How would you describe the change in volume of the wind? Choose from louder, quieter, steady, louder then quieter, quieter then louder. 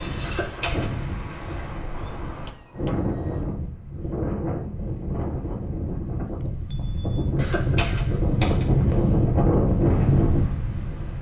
louder.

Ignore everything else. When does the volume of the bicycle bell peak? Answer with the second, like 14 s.
3 s.